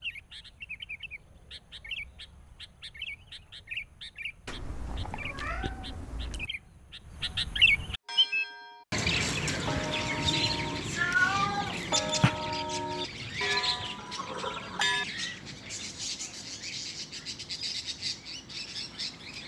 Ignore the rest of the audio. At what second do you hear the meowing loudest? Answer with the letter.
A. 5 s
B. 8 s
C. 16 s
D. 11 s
D.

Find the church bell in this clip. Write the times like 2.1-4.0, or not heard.
8.1-15.1.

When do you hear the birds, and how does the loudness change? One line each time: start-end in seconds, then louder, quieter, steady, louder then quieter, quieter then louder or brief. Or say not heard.
0.0-19.4 louder then quieter.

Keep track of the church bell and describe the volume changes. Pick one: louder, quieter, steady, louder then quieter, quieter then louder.
louder.